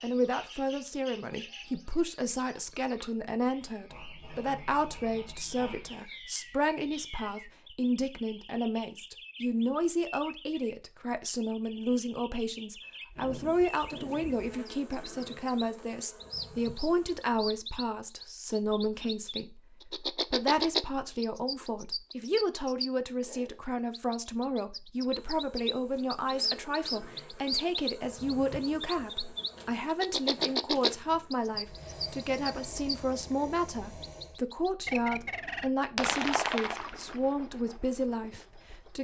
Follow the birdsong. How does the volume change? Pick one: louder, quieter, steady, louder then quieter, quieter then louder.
louder.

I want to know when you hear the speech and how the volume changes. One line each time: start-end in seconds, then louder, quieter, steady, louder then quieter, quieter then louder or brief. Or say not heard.
0.0-38.9 steady.